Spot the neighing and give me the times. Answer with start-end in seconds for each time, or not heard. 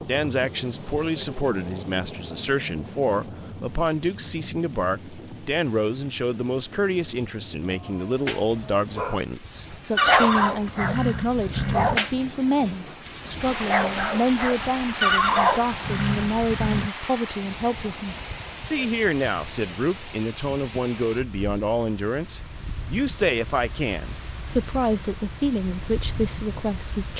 9.9-12.0, 15.0-16.9.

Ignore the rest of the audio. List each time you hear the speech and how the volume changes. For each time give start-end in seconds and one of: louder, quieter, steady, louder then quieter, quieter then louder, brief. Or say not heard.
0.1-27.1 steady.